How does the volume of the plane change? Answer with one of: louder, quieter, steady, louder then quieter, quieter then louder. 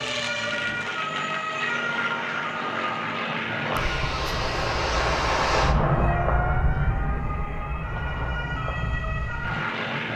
louder then quieter.